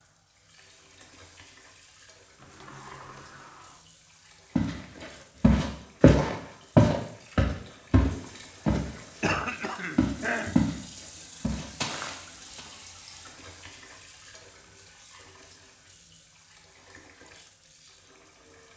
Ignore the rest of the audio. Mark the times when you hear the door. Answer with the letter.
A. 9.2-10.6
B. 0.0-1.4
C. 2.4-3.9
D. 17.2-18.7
C.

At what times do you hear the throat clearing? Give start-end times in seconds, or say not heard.
9.2-10.6.